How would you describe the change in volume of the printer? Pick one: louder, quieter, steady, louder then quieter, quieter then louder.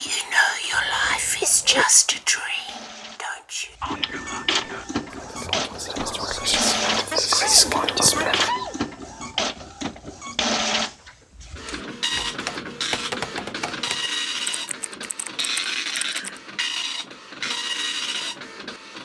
louder.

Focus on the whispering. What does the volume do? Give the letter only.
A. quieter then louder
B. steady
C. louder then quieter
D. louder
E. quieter
A.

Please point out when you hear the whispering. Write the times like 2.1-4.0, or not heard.
0.0-8.5.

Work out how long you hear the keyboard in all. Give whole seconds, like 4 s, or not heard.
5 s.